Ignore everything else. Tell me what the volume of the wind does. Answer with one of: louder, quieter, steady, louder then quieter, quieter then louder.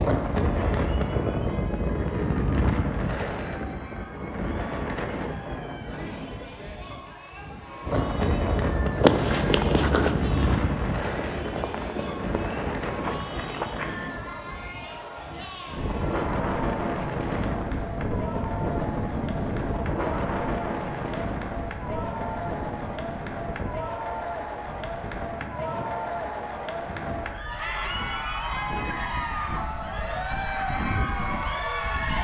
quieter.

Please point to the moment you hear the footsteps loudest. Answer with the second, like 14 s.
9 s.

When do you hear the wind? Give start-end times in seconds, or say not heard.
0.0-32.2.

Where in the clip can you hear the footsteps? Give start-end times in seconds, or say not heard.
9.0-14.2.